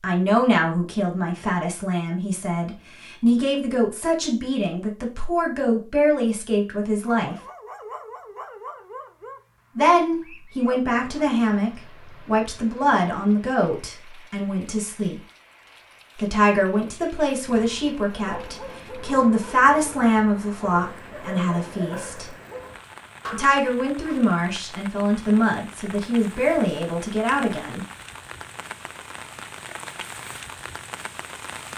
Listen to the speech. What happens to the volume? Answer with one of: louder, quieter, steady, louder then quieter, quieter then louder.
steady.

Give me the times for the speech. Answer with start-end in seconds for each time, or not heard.
0.0-7.3, 9.8-15.2, 16.1-22.2, 23.3-27.9.